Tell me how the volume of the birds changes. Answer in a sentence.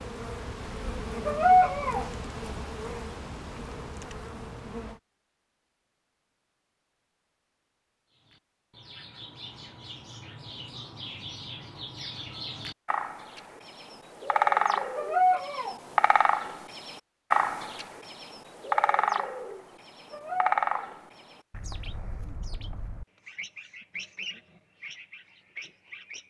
The loudness of the birds goes up, then down.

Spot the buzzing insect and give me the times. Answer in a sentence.
The buzzing insect can be heard from 0.0 to 5.0 s.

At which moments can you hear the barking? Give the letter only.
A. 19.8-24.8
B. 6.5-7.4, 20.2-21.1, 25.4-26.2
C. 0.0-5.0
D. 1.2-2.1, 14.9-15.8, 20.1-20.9
D.